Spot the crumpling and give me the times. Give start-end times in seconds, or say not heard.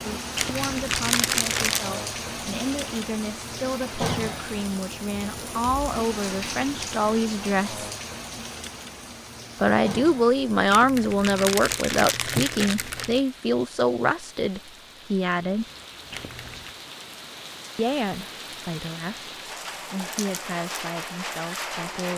0.3-1.9, 10.7-13.2, 16.1-16.8.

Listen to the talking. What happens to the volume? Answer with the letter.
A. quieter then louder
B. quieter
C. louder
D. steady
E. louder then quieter
E.